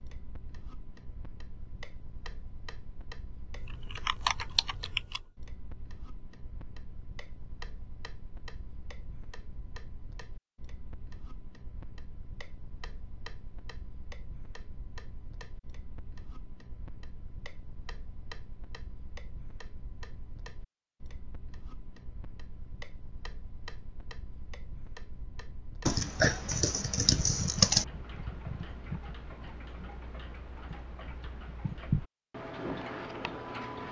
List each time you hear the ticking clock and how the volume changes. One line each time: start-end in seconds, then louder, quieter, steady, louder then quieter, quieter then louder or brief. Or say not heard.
0.0-33.8 louder.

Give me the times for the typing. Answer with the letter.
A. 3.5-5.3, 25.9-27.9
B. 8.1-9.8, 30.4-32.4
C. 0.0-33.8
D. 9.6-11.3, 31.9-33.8
A.